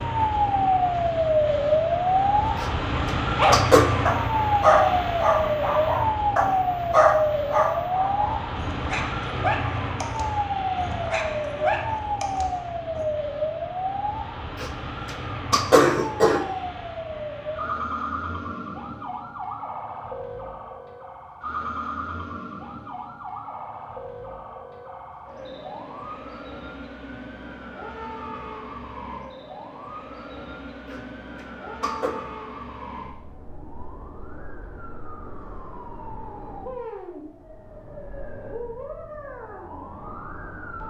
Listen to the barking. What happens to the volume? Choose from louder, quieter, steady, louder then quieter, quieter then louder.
quieter.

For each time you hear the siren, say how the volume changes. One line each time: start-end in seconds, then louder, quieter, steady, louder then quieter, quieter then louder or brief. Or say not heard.
0.0-40.8 quieter.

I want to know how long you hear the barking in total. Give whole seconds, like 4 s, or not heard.
10 s.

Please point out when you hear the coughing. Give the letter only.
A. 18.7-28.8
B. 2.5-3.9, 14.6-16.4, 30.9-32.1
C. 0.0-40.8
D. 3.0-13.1
B.